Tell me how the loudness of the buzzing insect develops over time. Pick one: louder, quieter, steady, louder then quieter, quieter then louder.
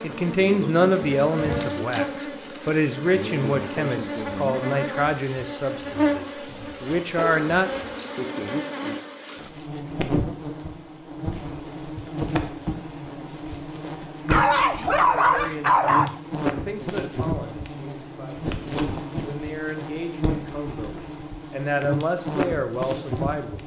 steady.